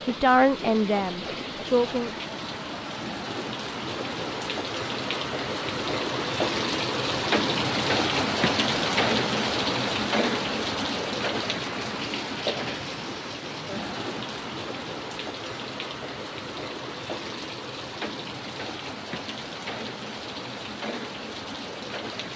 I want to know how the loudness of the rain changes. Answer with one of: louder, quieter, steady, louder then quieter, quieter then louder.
louder then quieter.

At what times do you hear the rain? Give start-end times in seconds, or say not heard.
0.0-22.3.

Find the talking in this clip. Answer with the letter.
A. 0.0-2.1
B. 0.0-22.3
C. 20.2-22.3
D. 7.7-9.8
A.